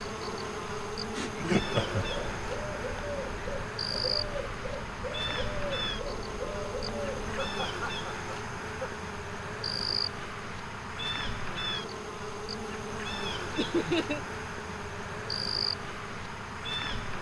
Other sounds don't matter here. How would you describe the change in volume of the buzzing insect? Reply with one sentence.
The loudness of the buzzing insect stays about the same.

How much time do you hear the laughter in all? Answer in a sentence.
The laughter can be heard for 3 seconds in total.